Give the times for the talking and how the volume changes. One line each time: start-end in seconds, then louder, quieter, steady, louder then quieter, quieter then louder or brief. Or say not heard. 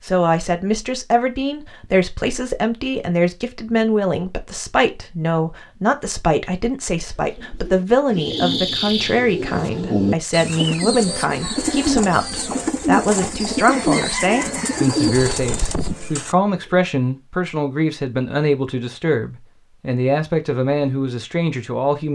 0.0-22.1 steady.